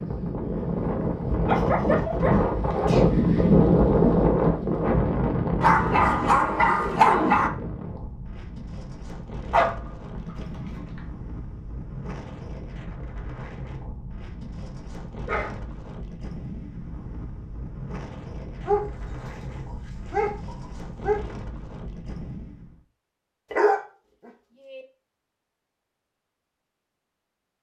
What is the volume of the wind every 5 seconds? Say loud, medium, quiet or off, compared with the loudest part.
loud, medium, quiet, quiet, quiet, off.